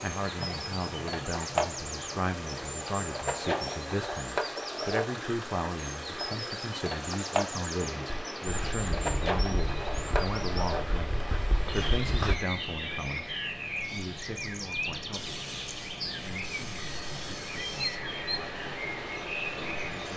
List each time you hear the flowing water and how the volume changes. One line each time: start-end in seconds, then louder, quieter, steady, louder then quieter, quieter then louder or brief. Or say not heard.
0.0-20.1 quieter then louder.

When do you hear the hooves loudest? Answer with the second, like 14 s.
12 s.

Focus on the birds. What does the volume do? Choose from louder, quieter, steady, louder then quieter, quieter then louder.
steady.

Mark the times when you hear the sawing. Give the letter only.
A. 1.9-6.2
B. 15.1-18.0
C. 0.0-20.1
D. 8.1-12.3
B.